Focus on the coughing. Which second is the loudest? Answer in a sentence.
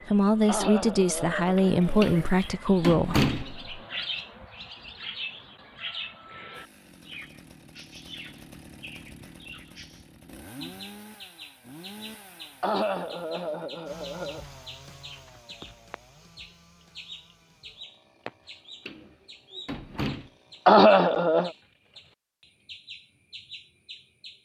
The loudest moment of the coughing is at 21 seconds.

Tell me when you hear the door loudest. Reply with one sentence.
The loudest moment of the door is at 3 seconds.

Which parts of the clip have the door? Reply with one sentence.
You can hear the door from 2.0 to 3.5 s and from 18.9 to 20.3 s.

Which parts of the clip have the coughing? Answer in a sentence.
The coughing can be heard from 0.5 to 2.3 s, from 12.6 to 14.4 s and from 20.6 to 21.5 s.